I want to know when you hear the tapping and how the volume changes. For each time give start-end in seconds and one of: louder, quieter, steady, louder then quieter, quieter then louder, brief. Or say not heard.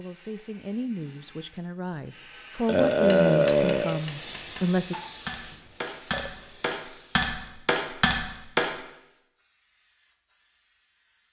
2.9-8.8 louder.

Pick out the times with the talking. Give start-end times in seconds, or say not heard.
0.0-5.0.